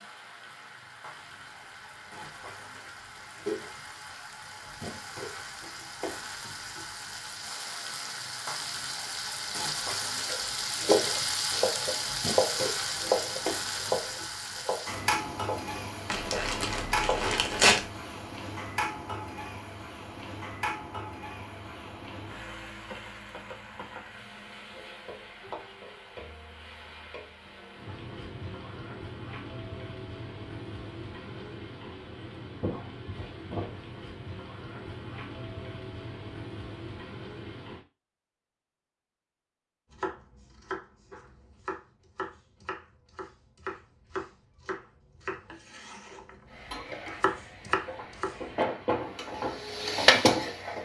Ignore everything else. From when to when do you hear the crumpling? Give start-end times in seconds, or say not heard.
16.1-17.9.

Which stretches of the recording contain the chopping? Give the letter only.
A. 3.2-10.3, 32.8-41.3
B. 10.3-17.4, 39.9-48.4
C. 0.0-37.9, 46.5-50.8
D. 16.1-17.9
B.